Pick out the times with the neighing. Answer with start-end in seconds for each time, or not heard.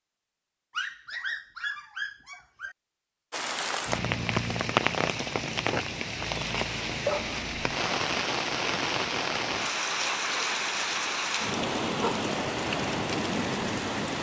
not heard.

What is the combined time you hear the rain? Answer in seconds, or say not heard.
11 s.